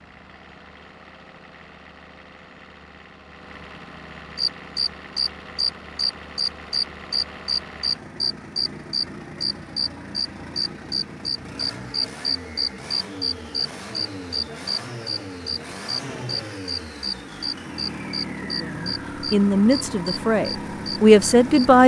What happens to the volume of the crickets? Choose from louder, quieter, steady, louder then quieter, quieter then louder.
quieter.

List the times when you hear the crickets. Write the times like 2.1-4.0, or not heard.
4.3-21.6.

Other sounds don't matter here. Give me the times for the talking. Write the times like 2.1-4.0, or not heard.
18.2-21.8.